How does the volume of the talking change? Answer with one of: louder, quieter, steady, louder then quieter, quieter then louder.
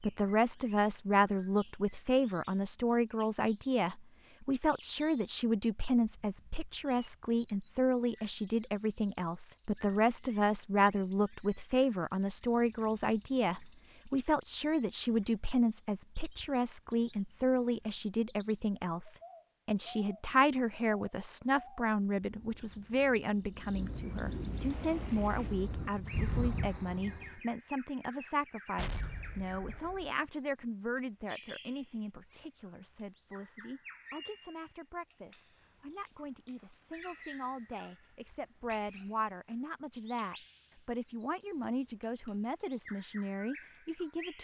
quieter.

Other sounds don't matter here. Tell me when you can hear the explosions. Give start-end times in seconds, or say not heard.
28.8-30.1.